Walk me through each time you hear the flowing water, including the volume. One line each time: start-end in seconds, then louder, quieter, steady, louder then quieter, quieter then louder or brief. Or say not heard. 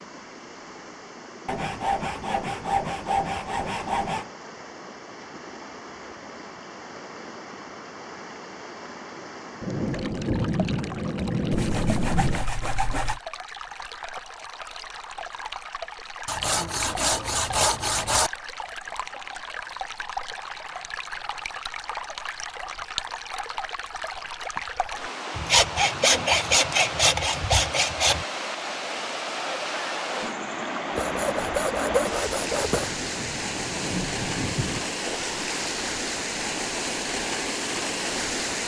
0.0-38.6 louder.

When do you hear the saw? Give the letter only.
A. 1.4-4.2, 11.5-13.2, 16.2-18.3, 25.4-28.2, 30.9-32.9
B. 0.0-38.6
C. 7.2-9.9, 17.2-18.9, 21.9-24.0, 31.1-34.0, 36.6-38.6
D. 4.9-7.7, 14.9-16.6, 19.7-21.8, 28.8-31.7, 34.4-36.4
A.